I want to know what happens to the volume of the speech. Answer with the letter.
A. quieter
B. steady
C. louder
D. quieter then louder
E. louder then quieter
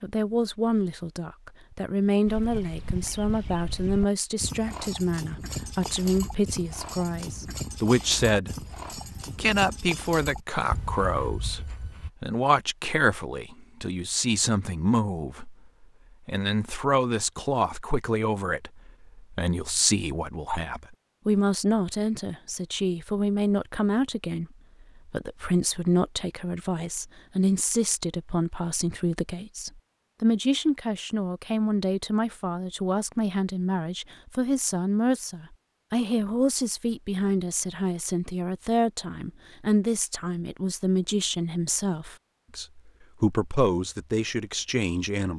B.